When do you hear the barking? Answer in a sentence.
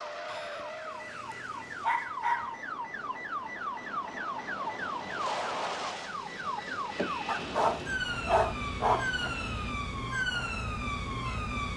You can hear the barking from 0.2 to 2.5 s and from 7.2 to 9.3 s.